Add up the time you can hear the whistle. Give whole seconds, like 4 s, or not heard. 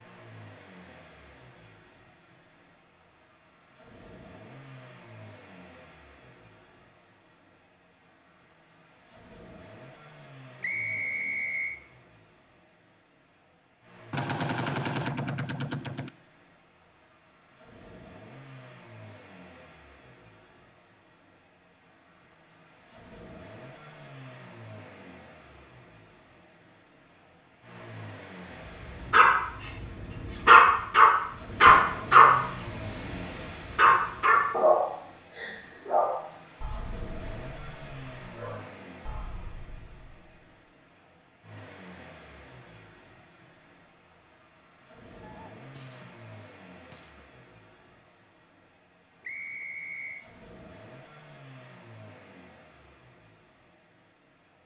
2 s.